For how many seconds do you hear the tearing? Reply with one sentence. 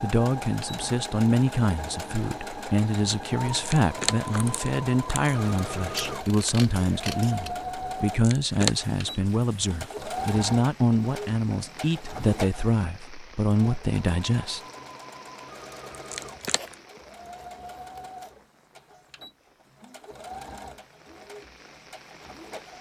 You can hear the tearing for 3 seconds altogether.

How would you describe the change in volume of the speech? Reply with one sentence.
The loudness of the speech stays about the same.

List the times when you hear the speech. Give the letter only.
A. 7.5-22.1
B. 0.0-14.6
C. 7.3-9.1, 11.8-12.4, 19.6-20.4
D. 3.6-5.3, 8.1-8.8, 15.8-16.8
B.